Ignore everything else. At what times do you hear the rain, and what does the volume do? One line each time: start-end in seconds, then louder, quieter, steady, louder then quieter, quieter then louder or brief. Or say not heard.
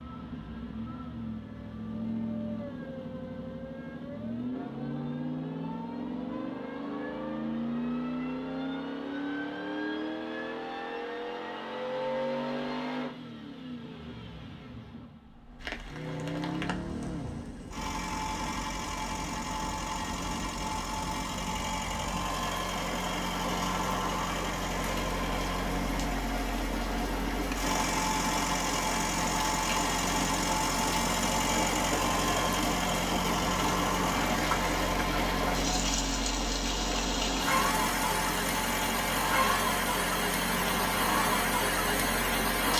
15.6-42.7 louder.